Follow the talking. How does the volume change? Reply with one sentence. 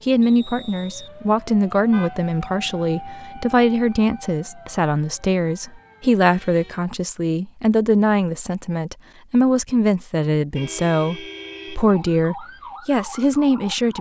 The loudness of the talking stays about the same.